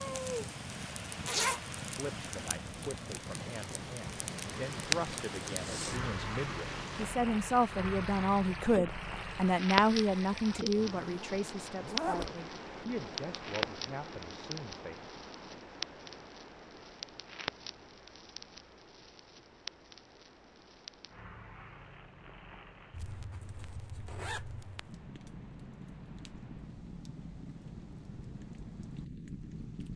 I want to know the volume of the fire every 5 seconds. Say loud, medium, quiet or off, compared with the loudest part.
loud, loud, loud, medium, quiet, medium.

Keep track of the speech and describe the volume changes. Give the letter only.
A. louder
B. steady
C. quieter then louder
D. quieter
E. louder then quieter
E.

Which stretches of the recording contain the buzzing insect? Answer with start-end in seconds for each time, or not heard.
not heard.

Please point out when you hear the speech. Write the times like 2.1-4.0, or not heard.
1.9-15.1.